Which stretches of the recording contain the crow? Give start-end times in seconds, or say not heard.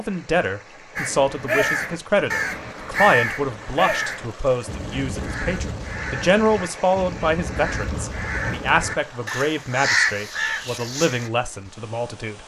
0.9-11.3.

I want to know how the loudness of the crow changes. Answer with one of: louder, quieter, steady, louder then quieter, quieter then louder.
quieter then louder.